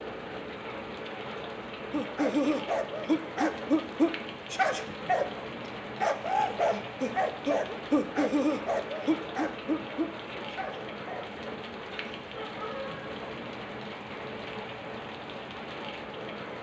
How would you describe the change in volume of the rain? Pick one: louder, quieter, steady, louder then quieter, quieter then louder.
steady.